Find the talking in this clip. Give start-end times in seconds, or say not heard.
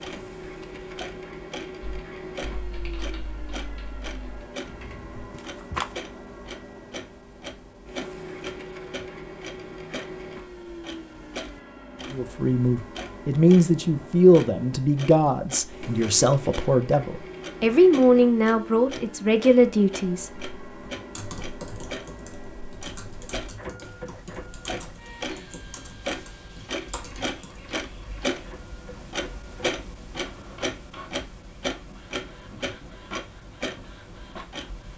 12.1-20.4.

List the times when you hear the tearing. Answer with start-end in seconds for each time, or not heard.
5.3-6.0.